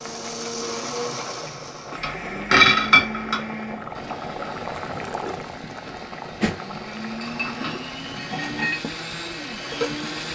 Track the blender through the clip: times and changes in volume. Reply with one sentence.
You can hear the blender from 0.0 to 10.2 s, getting quieter then louder.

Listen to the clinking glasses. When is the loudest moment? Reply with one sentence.
The loudest moment of the clinking glasses is at 3 seconds.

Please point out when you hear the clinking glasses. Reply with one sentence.
You can hear the clinking glasses from 2.0 to 3.4 s and from 7.2 to 8.8 s.